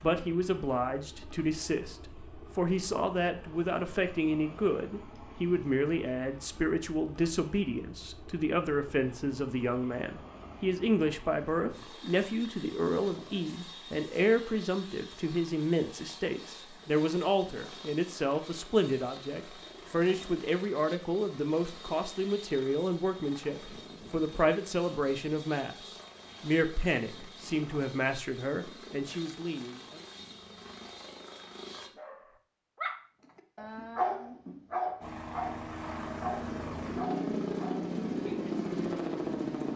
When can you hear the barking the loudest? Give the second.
34 s.